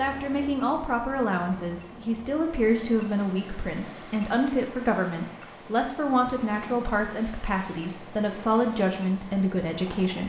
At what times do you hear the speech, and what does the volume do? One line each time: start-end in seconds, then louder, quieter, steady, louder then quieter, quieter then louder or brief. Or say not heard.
0.0-10.2 steady.